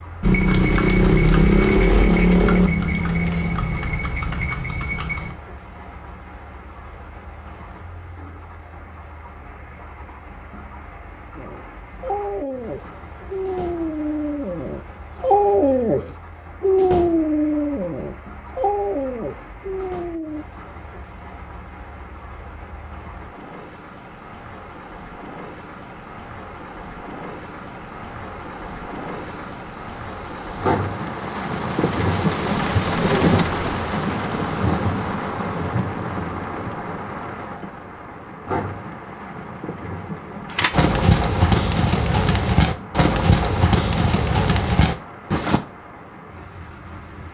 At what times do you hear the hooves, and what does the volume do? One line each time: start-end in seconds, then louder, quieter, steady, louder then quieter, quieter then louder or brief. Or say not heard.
0.2-5.3 quieter
40.5-45.6 steady.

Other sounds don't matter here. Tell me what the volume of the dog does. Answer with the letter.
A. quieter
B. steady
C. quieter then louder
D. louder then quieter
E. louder
D.